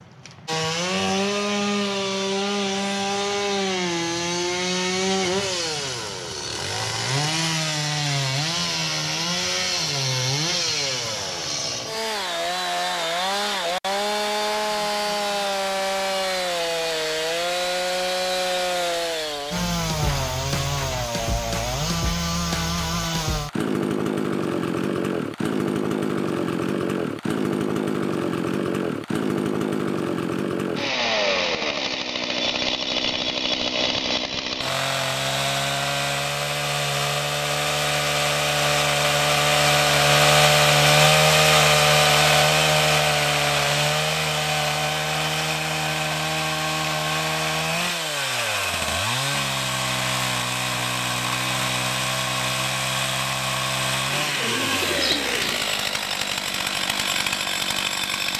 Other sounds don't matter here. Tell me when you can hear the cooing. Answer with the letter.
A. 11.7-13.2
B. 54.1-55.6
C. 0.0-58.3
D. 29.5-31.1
B.